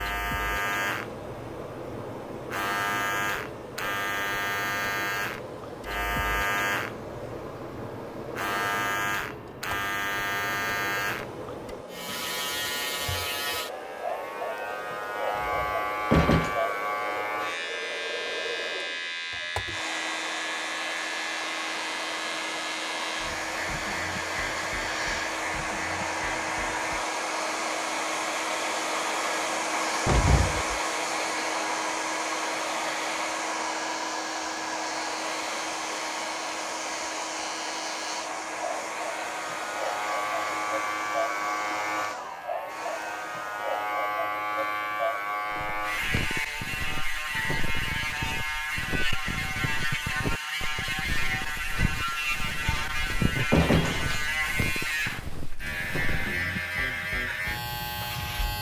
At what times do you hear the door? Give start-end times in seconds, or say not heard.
15.3-16.6, 30.1-30.8, 52.8-54.5.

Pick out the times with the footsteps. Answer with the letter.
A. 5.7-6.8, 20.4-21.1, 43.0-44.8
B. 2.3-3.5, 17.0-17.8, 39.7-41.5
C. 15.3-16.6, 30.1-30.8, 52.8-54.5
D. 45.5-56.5
D.